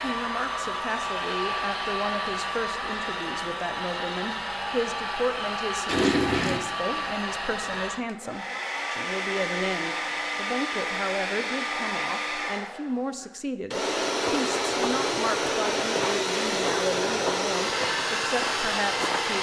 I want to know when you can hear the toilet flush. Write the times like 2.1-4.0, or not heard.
5.8-6.6.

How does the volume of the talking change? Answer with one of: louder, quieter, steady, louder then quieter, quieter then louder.
steady.